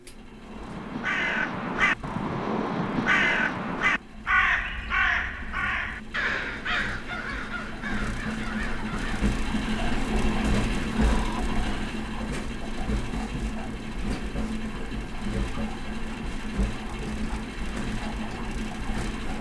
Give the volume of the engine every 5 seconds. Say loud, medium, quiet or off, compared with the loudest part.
quiet, loud, loud, loud.